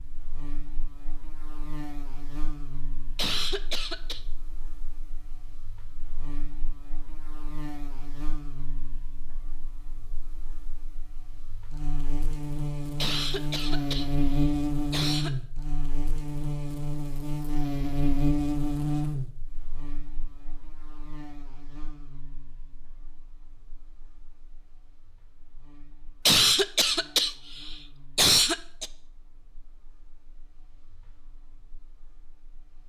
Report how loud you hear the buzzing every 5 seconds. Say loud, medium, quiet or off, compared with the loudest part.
quiet, quiet, loud, loud, quiet, quiet, quiet.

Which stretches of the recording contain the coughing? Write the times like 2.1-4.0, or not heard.
3.1-4.2, 13.0-15.3, 26.2-28.9.